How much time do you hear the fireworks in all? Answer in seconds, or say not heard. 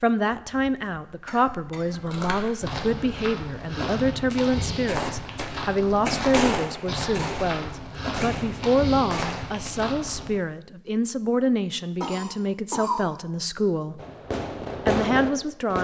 7 s.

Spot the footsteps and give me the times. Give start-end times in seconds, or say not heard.
1.9-10.3.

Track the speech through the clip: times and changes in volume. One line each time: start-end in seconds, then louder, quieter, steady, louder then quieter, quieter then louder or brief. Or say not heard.
0.0-14.0 steady
14.8-15.7 brief.